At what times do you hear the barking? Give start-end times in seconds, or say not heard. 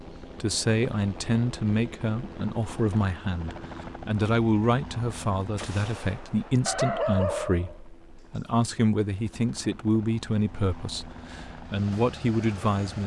6.7-8.5.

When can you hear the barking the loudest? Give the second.
7 s.